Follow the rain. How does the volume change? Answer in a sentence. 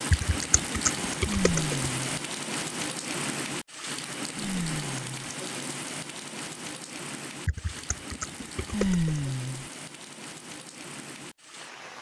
The volume of the rain goes down.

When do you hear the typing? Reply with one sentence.
You can hear the typing from 0.1 to 1.9 s and from 7.5 to 9.2 s.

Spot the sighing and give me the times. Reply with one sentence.
You can hear the sighing from 1.2 to 2.2 s, from 4.3 to 5.3 s and from 8.7 to 9.7 s.